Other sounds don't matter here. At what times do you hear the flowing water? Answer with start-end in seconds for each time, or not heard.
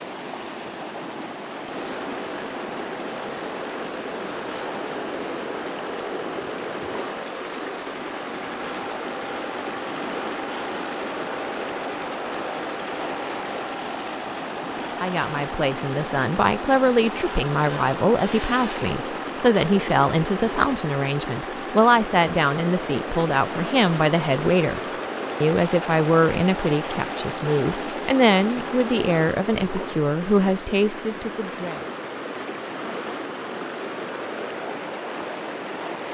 0.0-36.0.